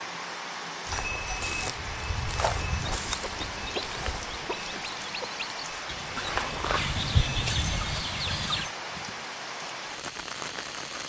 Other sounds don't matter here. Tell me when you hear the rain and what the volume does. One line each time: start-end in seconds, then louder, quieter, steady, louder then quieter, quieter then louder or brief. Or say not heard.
0.0-11.0 steady.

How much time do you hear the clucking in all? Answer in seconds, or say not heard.
6 s.